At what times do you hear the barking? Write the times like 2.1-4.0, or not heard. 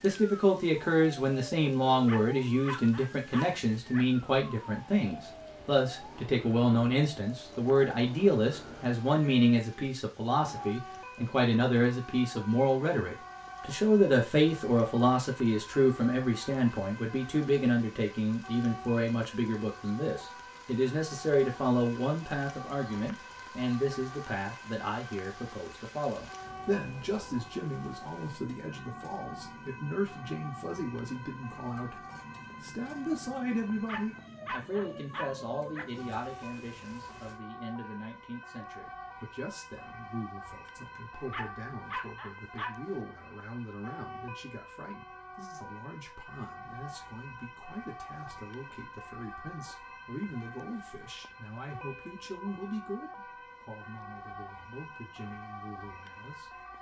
2.0-4.0, 33.9-35.9, 41.3-42.8.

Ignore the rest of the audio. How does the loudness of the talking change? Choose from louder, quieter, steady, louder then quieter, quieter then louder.
quieter.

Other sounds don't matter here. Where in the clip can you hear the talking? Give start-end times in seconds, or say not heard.
0.0-31.9, 32.6-56.6.